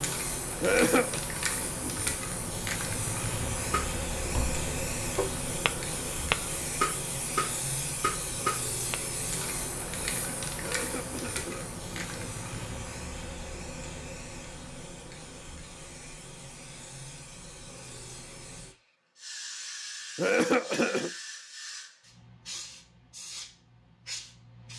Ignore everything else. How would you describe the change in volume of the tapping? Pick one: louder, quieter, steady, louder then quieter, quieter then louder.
louder.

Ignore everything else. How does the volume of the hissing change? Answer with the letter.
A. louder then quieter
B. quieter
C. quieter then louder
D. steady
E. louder
B.